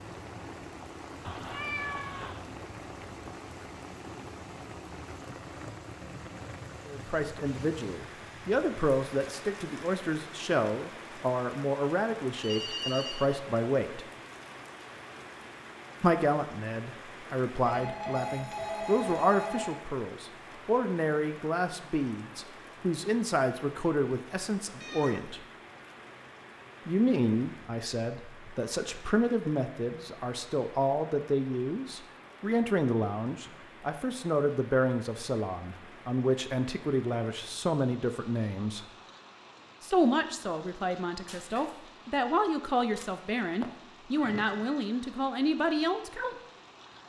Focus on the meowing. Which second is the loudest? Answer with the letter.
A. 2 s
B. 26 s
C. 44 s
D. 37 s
A.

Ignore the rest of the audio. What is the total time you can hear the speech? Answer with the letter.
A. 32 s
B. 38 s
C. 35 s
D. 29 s
C.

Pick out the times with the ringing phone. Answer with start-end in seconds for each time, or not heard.
12.4-13.2, 17.6-19.7, 41.2-41.8.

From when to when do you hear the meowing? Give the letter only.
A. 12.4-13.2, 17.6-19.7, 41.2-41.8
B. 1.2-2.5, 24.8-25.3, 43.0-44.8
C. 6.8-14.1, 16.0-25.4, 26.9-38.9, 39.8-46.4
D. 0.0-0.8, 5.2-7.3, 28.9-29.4
B.